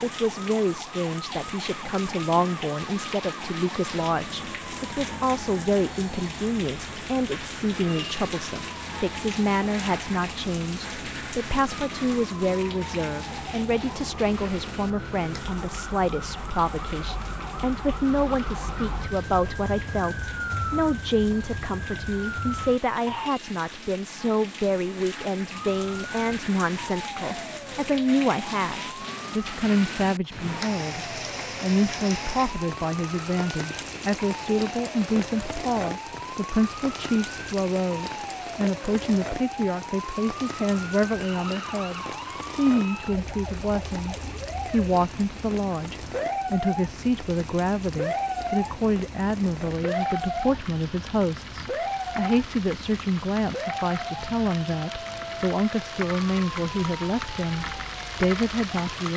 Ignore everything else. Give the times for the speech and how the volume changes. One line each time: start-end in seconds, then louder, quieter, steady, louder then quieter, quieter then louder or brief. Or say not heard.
0.0-59.1 steady.